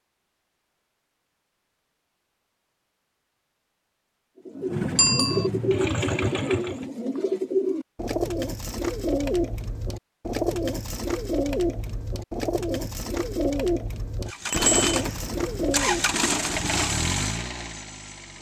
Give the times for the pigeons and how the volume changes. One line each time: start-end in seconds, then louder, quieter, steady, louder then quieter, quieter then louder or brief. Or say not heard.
4.5-16.2 steady.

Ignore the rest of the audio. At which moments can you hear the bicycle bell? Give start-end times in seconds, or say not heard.
5.0-5.5, 14.5-14.9.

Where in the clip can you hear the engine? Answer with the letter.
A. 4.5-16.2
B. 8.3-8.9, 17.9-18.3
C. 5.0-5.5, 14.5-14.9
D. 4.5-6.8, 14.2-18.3
D.